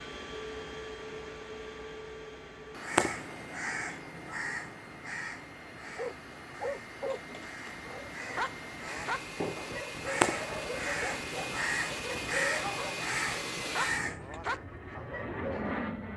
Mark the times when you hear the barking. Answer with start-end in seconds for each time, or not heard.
6.0-15.9.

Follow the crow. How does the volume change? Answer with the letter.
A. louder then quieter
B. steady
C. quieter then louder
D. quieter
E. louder
C.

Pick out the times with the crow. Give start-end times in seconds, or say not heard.
2.8-14.4.